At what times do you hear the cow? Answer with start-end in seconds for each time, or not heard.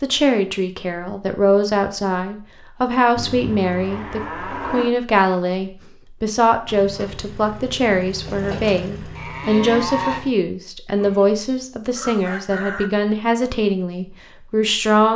3.1-5.0, 9.2-10.3.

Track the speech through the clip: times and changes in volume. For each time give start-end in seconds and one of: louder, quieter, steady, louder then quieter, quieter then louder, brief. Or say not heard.
0.0-15.1 steady.